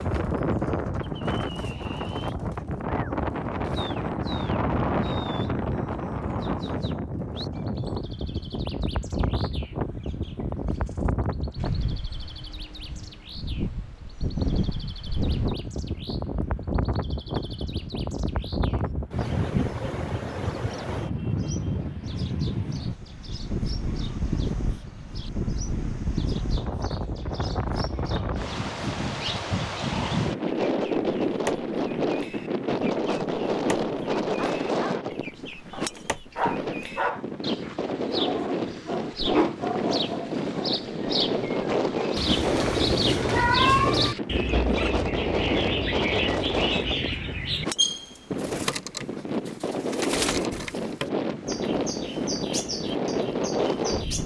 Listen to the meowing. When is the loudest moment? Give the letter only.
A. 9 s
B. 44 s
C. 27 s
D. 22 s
B.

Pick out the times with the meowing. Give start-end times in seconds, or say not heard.
42.1-44.1.